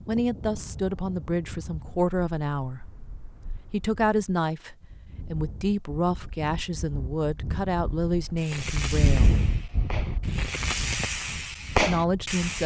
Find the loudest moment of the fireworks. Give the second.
12 s.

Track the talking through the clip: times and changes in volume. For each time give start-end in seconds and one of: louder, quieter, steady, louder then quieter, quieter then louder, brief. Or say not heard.
0.1-2.8 brief
3.7-9.3 steady
11.8-12.6 brief.